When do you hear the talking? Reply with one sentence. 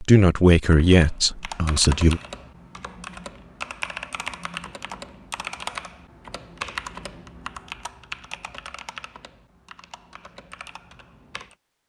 You can hear the talking from 0.0 to 2.2 s.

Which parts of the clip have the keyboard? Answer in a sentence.
The keyboard can be heard from 0.7 to 11.6 s.